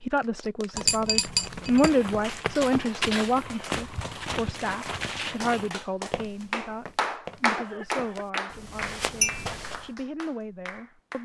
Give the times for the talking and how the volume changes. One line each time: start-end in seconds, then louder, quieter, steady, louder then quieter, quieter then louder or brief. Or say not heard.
0.0-11.2 quieter.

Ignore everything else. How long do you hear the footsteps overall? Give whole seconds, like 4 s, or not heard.
9 s.